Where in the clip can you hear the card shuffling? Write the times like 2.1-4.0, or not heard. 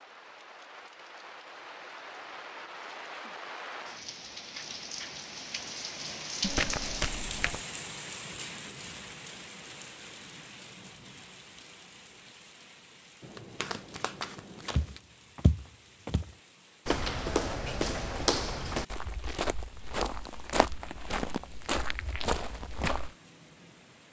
6.4-7.6, 13.2-15.0.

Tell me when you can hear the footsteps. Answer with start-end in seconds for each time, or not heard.
14.7-23.1.